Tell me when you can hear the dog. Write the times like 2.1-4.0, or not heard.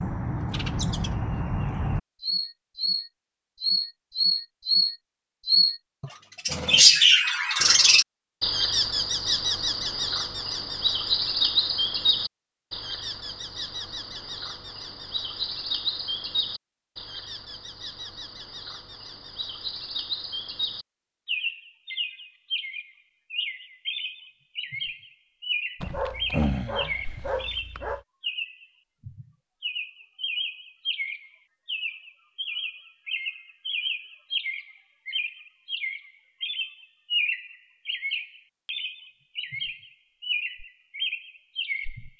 25.8-28.0.